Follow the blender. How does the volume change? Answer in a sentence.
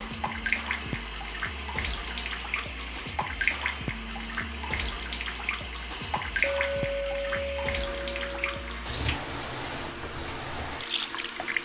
The loudness of the blender stays about the same.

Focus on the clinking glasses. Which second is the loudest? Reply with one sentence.
The loudest moment of the clinking glasses is at 7 seconds.